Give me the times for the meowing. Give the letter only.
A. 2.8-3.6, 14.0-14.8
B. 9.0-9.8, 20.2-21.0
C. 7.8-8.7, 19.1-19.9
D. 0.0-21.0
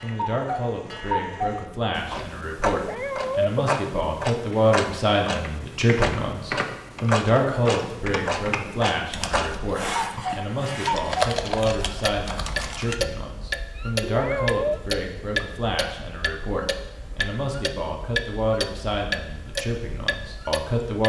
A.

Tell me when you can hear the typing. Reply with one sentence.
You can hear the typing from 5.3 to 12.9 s.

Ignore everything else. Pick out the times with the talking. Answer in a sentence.
You can hear the talking from 0.0 to 21.0 s.